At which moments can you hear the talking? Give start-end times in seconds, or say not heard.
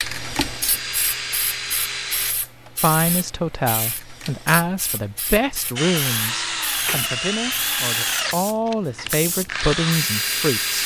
2.8-10.8.